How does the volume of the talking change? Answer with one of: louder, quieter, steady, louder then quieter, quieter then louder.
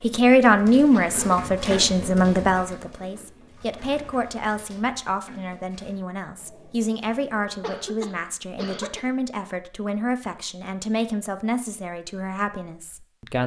quieter.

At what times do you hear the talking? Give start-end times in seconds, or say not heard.
0.0-13.4.